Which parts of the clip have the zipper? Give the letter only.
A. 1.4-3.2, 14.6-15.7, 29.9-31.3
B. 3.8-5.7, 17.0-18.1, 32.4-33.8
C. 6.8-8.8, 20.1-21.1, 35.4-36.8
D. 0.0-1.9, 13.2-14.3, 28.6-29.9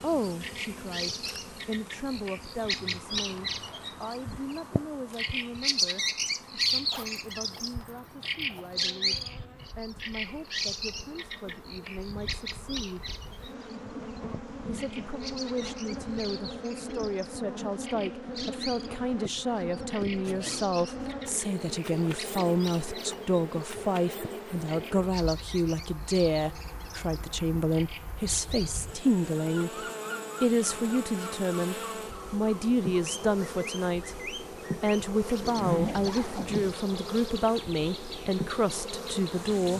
C.